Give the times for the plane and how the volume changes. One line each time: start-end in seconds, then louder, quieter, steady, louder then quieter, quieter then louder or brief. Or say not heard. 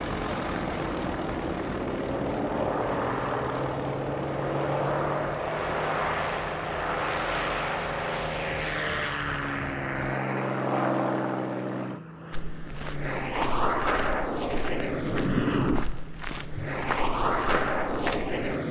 0.0-18.6 steady.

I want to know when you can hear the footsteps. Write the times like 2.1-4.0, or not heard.
12.3-18.6.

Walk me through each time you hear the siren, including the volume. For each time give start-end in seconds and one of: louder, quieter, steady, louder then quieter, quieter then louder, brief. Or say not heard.
not heard.